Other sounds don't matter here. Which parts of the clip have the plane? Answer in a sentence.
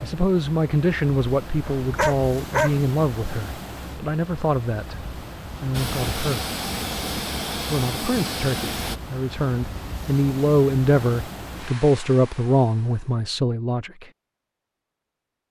The plane can be heard from 5.7 to 9.0 s.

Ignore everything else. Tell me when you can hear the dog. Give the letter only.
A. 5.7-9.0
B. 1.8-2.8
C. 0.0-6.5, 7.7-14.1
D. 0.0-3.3
B.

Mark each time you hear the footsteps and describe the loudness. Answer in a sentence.
The footsteps can't be heard in this clip.